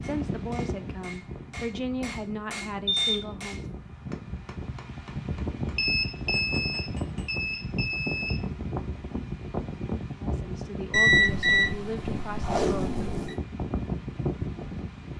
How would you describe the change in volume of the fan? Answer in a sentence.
The loudness of the fan goes up.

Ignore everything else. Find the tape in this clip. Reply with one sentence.
You can hear the tape from 12.4 to 13.4 s.